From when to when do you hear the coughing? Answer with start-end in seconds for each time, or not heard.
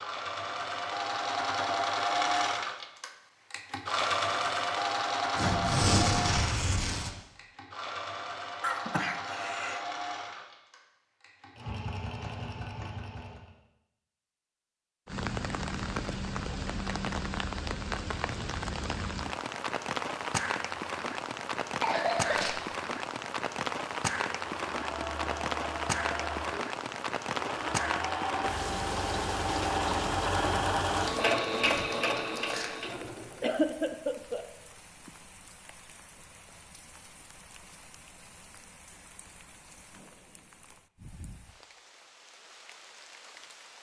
8.6-9.8, 21.8-22.6, 33.4-34.5.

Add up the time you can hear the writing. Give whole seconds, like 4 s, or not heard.
not heard.